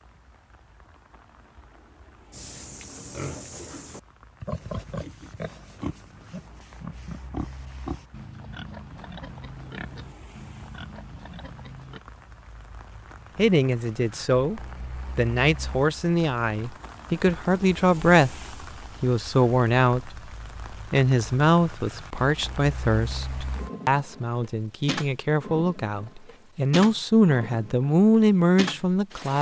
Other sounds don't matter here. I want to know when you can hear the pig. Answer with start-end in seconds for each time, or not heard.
2.3-12.0.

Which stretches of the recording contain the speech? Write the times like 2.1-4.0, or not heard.
13.3-29.3.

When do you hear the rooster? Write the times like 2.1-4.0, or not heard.
not heard.